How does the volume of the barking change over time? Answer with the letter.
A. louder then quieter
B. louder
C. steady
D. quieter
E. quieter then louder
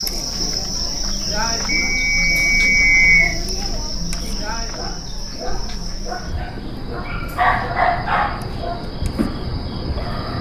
A.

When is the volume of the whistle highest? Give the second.
3 s.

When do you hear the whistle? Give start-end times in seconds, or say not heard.
1.6-3.4.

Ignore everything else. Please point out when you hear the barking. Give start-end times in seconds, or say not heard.
4.8-10.3.